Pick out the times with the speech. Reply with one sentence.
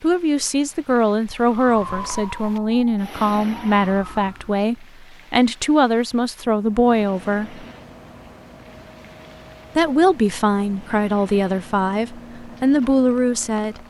You can hear the speech from 0.0 to 7.7 s and from 9.8 to 13.8 s.